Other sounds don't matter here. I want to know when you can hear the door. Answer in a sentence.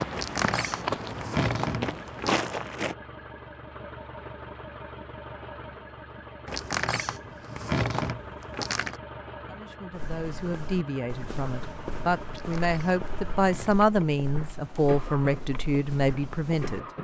The door can be heard from 0.1 to 2.5 s, from 6.5 to 9.0 s and from 12.3 to 13.9 s.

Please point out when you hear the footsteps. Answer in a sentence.
You can hear the footsteps from 0.0 to 3.0 s and from 9.9 to 16.8 s.